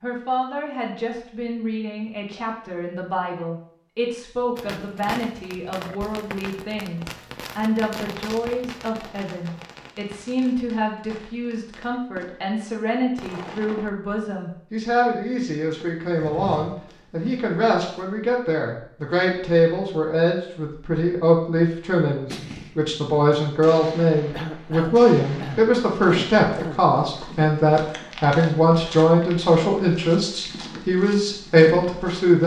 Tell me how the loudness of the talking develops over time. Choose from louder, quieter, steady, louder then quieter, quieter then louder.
louder.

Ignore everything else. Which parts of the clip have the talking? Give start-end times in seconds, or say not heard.
0.0-32.4.